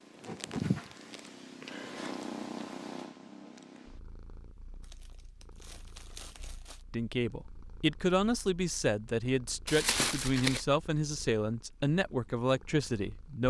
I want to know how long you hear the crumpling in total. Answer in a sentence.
The crumpling can be heard for 4 seconds in total.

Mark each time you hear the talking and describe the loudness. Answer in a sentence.
You can hear the talking from 6.9 to 13.4 s, at a steady volume.